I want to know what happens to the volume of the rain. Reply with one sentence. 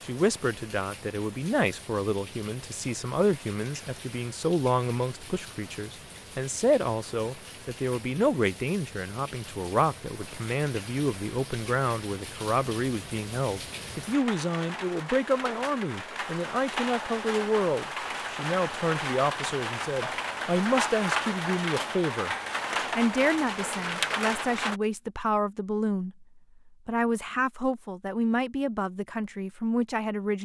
The loudness of the rain goes up.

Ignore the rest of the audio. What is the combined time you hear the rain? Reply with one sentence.
The rain can be heard for 25 seconds in total.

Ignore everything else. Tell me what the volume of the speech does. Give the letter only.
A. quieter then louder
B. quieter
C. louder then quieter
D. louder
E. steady
E.